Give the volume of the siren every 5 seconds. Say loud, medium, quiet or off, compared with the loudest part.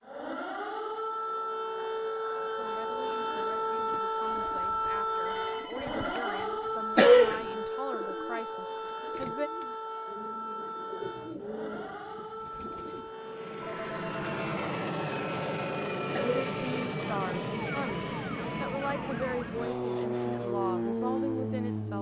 loud, loud, medium, medium, off.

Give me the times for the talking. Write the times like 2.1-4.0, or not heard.
2.5-9.5, 16.2-21.9.